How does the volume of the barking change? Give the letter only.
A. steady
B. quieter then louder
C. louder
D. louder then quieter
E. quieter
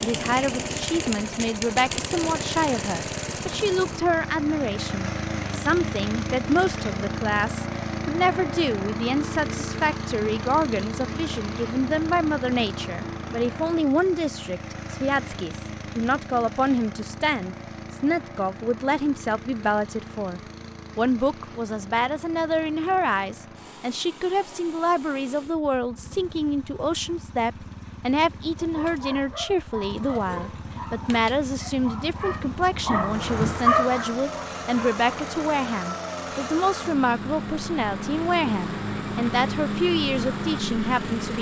C.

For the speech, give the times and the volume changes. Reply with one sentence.
You can hear the speech from 0.0 to 41.3 s, at a steady volume.